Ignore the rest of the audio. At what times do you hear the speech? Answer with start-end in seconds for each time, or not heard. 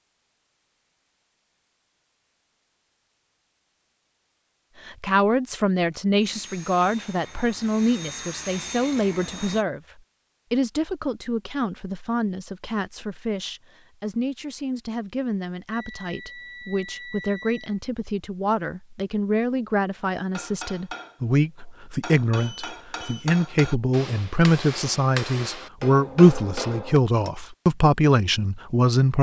4.8-29.1.